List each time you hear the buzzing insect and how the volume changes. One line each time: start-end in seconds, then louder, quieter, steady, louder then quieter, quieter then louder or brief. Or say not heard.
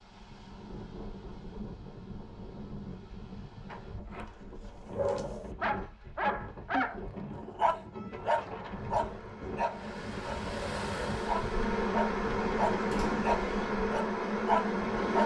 8.7-15.2 louder.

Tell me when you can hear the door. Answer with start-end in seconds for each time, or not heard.
3.6-5.0, 12.7-13.3.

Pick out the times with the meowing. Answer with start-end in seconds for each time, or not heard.
6.7-8.3.